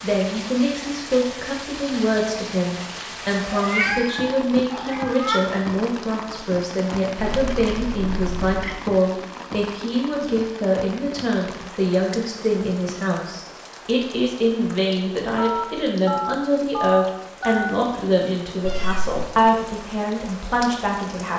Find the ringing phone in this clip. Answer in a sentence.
The ringing phone can be heard from 15.3 to 17.7 s.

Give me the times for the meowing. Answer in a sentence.
You can hear the meowing from 3.5 to 5.4 s, from 7.3 to 8.8 s and from 18.6 to 19.2 s.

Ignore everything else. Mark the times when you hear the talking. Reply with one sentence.
The talking can be heard from 0.0 to 21.3 s.